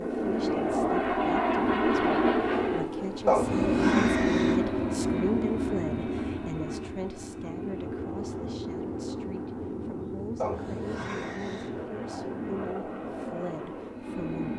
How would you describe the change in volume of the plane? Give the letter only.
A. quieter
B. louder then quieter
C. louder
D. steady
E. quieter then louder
A.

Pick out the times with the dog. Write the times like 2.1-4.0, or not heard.
3.2-4.5, 10.3-11.7.